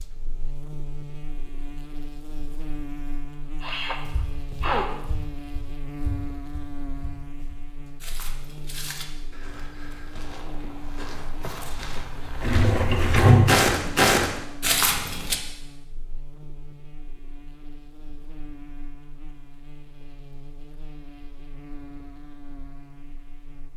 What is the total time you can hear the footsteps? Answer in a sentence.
You can hear the footsteps for 11 seconds altogether.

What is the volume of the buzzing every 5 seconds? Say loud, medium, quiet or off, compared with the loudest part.
loud, loud, loud, medium, medium.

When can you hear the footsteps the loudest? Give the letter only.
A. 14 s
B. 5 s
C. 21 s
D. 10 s
A.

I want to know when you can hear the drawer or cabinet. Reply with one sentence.
The drawer or cabinet can be heard from 12.4 to 13.7 s.